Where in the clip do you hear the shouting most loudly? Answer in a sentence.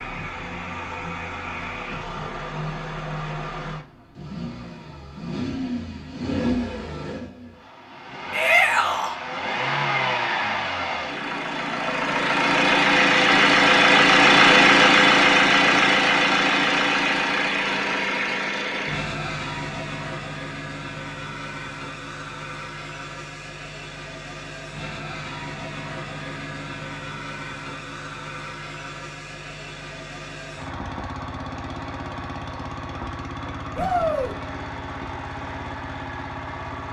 The loudest moment of the shouting is at 9 seconds.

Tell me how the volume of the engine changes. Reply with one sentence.
The loudness of the engine goes up, then down.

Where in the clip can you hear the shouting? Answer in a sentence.
The shouting can be heard from 8.3 to 9.2 s and from 33.8 to 34.4 s.